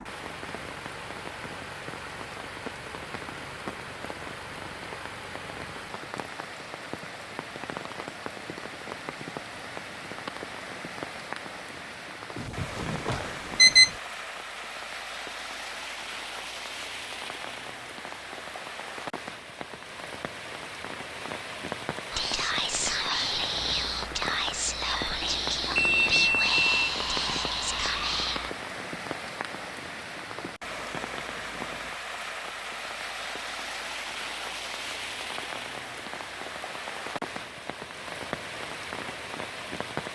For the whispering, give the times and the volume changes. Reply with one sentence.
The whispering can be heard from 22.1 to 28.5 s, at a steady volume.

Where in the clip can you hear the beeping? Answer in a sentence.
You can hear the beeping from 12.3 to 13.9 s and from 25.2 to 27.4 s.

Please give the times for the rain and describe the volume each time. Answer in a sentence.
You can hear the rain from 0.0 to 40.1 s, at a steady volume.